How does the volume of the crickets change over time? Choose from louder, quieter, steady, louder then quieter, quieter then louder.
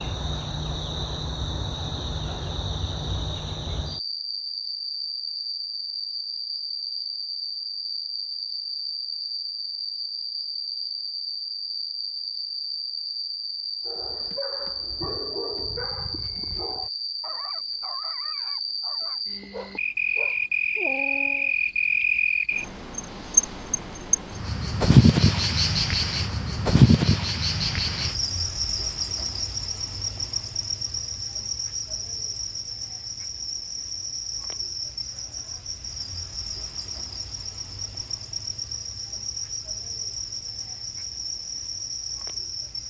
louder then quieter.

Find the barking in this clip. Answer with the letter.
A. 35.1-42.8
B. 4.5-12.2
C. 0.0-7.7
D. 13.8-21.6
D.